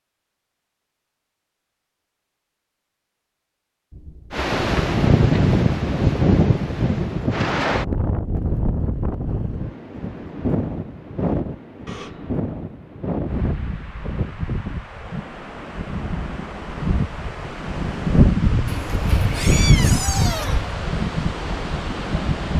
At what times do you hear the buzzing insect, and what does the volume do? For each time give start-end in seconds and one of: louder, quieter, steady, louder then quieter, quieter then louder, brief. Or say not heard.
not heard.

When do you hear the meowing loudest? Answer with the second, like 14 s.
20 s.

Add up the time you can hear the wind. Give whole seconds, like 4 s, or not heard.
18 s.